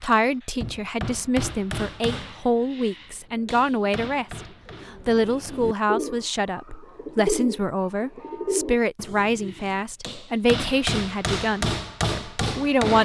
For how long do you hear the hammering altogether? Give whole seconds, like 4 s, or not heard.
9 s.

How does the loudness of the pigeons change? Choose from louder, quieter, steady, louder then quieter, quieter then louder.
louder.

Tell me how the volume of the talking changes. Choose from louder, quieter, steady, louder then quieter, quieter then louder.
steady.